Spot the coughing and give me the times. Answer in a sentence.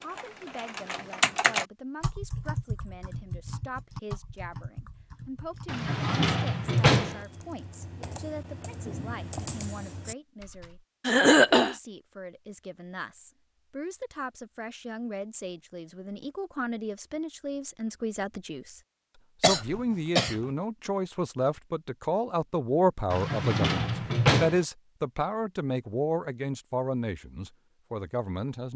The coughing can be heard from 11.1 to 11.8 s and from 19.4 to 20.4 s.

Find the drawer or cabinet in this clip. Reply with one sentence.
The drawer or cabinet can be heard from 5.7 to 7.2 s and from 23.1 to 24.6 s.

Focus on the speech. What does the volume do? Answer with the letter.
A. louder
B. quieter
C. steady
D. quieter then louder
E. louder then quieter
A.